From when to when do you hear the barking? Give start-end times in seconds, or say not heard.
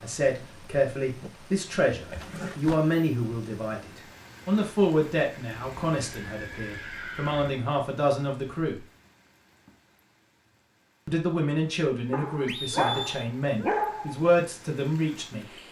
12.1-14.2.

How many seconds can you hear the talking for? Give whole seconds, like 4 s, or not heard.
13 s.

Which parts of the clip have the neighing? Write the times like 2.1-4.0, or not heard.
2.1-2.8, 5.5-7.5, 12.4-13.2.